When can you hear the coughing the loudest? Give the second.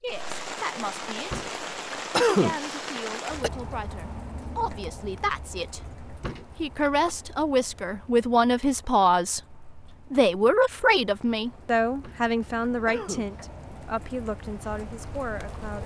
2 s.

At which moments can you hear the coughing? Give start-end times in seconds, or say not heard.
1.3-3.5, 6.2-7.2, 12.0-13.3.